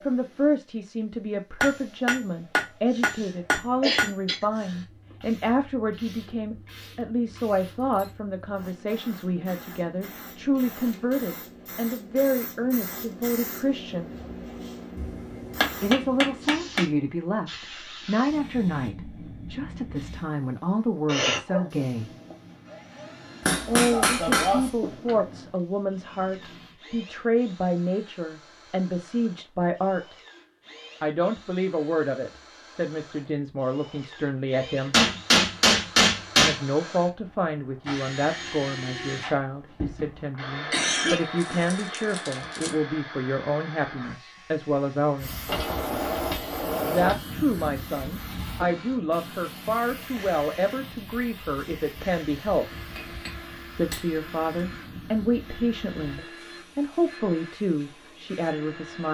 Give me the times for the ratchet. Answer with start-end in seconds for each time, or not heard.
not heard.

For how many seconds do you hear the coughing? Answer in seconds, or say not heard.
3 s.